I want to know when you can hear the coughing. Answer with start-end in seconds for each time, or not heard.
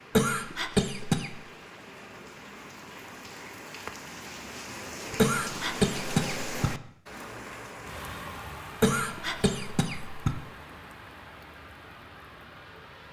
0.1-1.3, 5.2-6.7, 8.8-10.3.